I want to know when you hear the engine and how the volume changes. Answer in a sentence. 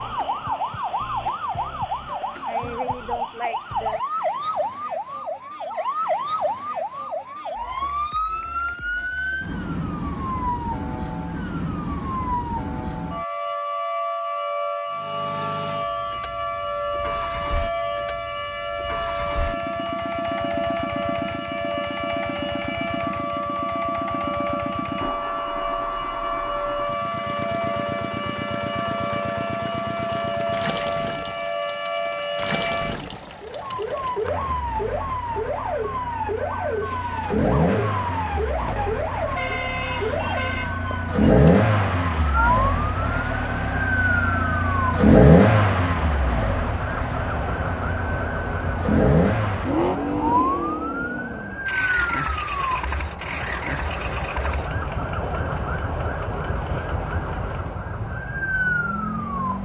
You can hear the engine from 14.9 to 59.6 s, getting louder then quieter.